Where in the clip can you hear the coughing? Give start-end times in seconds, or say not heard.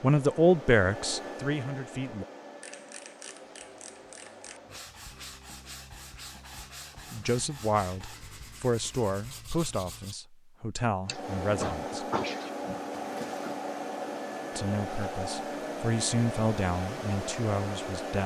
11.1-12.9.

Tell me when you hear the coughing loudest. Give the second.
12 s.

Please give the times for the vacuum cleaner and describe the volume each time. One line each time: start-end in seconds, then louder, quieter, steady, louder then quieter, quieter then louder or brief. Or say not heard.
0.0-4.9 quieter
11.1-18.2 steady.